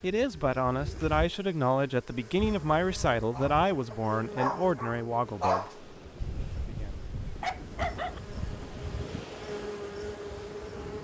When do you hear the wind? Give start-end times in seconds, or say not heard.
5.2-10.9.